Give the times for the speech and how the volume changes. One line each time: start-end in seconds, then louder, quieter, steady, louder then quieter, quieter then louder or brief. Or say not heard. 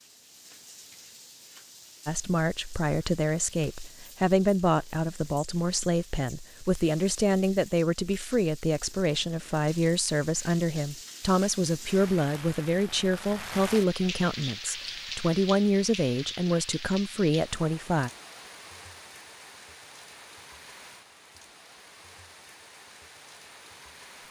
2.0-18.1 steady.